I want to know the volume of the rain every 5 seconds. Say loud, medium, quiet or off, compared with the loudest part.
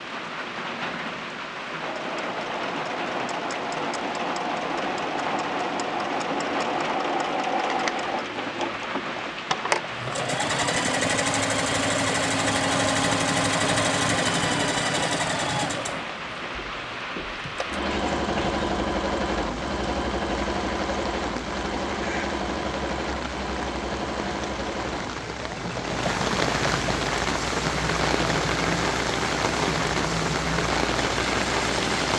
medium, medium, medium, medium, medium, loud, loud.